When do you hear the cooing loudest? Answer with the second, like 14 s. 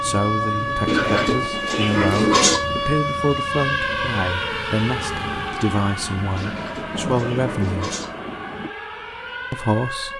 2 s.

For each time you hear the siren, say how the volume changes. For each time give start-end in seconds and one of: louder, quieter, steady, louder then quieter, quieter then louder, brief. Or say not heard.
0.0-10.1 quieter.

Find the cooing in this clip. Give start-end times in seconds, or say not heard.
0.8-2.6, 6.3-8.1.